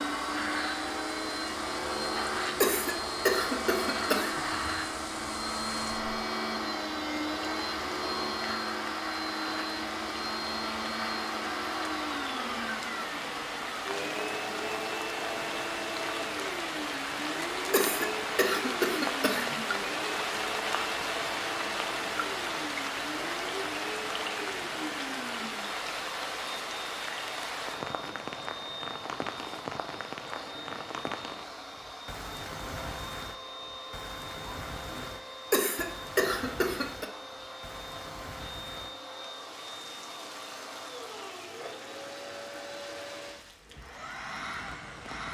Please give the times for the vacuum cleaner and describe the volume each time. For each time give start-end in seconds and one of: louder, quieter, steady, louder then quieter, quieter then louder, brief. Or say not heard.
0.0-45.2 quieter.